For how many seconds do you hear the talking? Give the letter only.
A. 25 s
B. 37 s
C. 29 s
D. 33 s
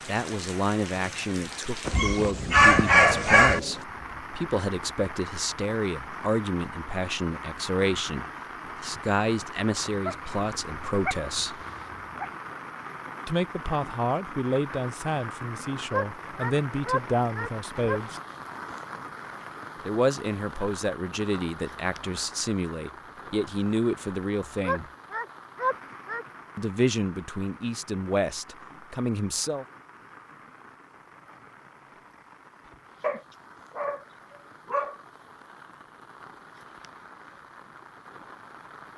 A.